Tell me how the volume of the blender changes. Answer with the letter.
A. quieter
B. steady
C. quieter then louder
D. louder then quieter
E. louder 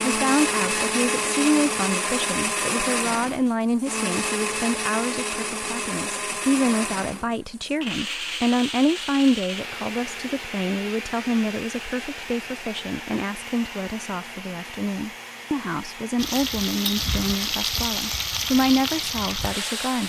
A.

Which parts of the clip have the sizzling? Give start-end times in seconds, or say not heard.
16.1-20.0.